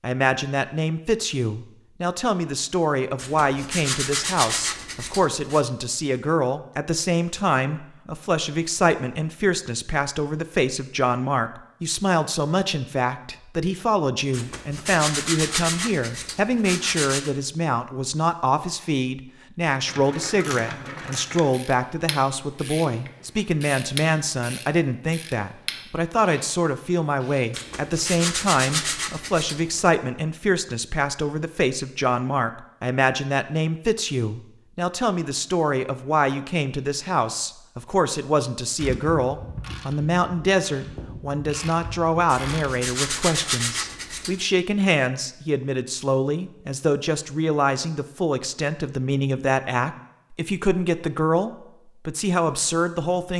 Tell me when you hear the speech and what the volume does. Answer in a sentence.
The speech can be heard from 0.0 to 53.3 s, at a steady volume.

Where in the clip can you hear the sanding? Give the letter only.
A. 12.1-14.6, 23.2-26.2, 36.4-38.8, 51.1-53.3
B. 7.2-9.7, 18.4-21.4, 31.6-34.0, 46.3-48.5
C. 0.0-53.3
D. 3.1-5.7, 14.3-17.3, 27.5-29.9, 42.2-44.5
D.